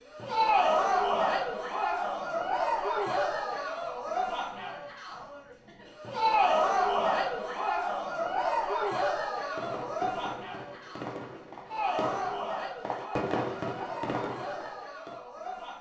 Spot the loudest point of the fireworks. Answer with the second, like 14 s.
13 s.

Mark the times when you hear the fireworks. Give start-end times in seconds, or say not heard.
9.6-15.2.